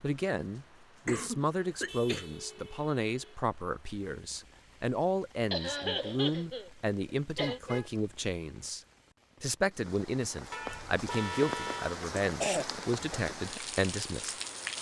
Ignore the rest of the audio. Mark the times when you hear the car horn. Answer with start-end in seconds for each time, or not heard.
1.9-3.4, 7.3-8.0, 10.5-12.0.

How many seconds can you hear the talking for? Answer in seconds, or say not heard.
14 s.